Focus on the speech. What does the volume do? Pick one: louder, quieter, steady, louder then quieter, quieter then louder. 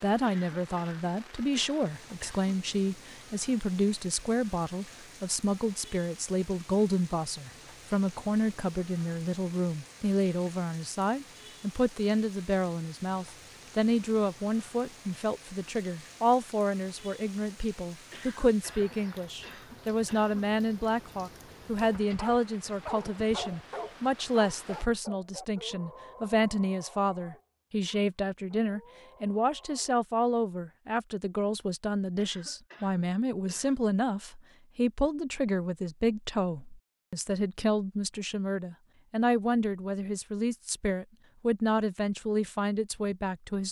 steady.